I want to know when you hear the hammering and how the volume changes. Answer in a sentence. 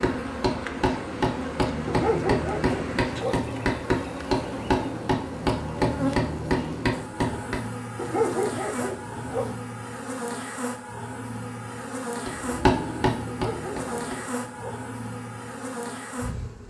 The hammering can be heard from 0.0 to 7.6 s, at a steady volume; and briefly from 12.2 to 14.2 s.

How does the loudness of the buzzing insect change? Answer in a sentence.
The loudness of the buzzing insect stays about the same.